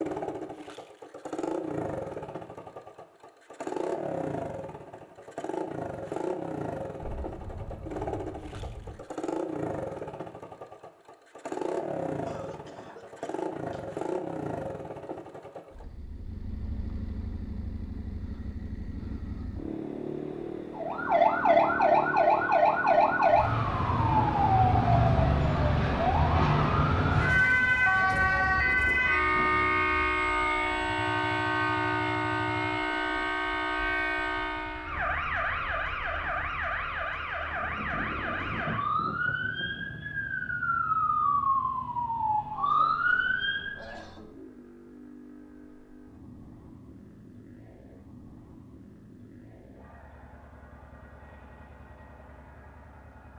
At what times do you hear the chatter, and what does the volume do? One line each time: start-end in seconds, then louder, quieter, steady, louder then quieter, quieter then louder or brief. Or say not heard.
not heard.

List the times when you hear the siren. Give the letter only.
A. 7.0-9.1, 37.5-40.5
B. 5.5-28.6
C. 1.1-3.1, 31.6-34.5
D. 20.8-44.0
D.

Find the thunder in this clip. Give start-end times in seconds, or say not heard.
7.0-9.1, 37.5-40.5.